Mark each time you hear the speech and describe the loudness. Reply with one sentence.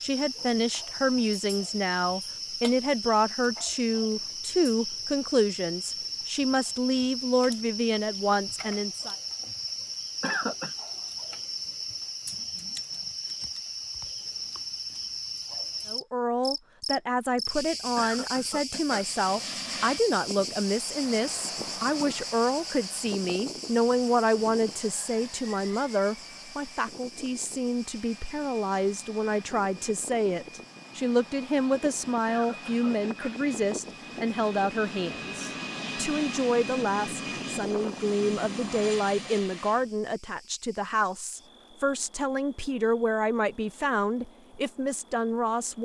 The speech can be heard from 0.0 to 9.2 s, at a steady volume; and from 15.8 to 45.8 s, at a steady volume.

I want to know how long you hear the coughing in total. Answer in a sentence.
The coughing can be heard for 3 seconds in total.